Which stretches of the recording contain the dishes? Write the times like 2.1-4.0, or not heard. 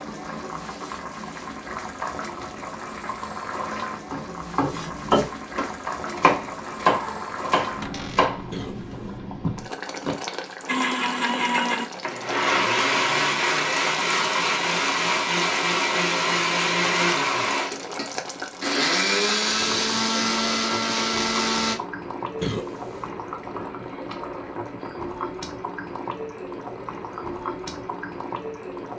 not heard.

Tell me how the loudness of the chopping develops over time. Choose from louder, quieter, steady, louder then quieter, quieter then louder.
quieter.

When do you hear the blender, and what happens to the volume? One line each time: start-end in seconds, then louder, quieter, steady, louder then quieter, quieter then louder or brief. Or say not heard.
10.7-21.8 steady.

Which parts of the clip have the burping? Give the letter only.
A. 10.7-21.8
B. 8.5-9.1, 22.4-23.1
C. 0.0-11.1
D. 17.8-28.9
B.